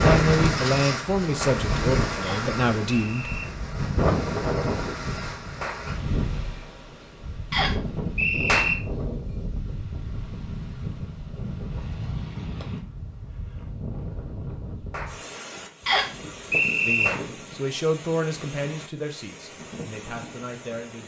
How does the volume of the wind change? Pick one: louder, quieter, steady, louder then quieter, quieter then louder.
quieter.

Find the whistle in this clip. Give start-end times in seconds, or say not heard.
2.2-3.5, 7.5-8.8, 15.8-17.1.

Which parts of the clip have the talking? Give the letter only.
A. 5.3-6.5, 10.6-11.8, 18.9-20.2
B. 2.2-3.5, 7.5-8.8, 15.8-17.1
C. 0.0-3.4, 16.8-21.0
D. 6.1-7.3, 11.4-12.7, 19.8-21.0
C.